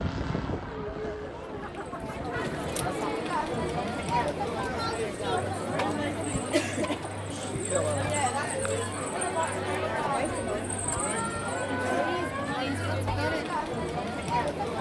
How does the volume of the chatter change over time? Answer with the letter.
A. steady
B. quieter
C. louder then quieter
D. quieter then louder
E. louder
A.